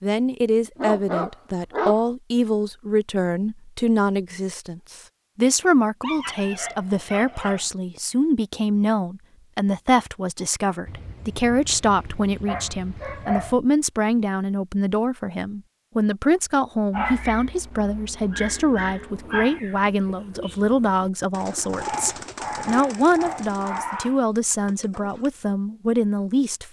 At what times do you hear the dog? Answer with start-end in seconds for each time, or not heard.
0.8-2.0, 6.0-7.7, 10.8-13.6, 16.9-19.6, 21.8-24.2.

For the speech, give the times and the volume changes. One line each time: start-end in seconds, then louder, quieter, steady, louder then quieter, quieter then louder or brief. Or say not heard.
0.0-26.6 steady.